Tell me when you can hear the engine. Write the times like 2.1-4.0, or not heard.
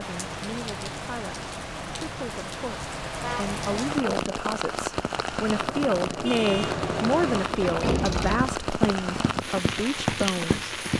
5.4-8.6.